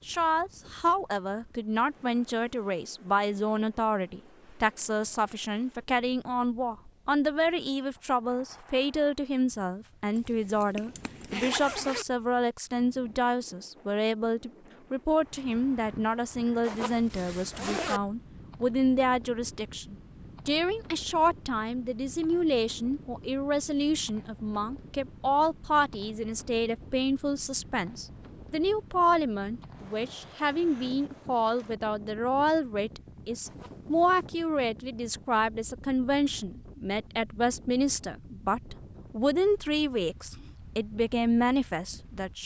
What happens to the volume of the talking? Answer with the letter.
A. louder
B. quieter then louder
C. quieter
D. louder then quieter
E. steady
E.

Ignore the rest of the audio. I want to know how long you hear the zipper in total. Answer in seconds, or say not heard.
4 s.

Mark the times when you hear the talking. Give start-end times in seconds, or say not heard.
0.1-42.4.